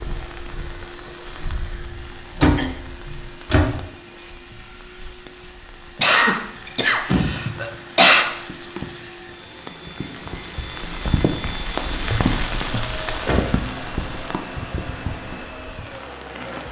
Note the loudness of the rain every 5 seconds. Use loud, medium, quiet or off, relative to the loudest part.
quiet, medium, loud, medium.